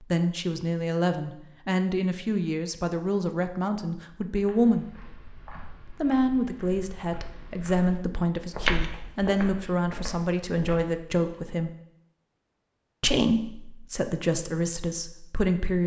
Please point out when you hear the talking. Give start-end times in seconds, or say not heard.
0.0-4.8, 5.9-11.8, 13.0-15.8.